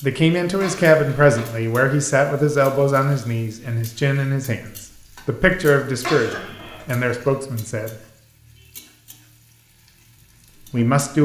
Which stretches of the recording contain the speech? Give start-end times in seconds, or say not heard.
0.0-8.0, 10.7-11.2.